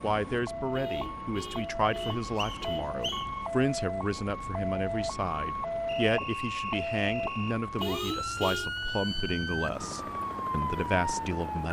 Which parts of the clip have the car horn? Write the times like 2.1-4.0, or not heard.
0.7-3.3, 7.8-8.7.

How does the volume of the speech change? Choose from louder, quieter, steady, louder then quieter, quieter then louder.
steady.